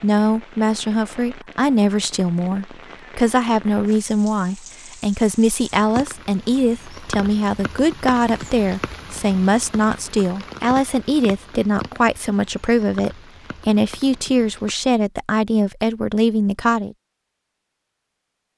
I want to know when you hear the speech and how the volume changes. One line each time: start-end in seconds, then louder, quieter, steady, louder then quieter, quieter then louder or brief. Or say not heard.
0.0-16.9 steady.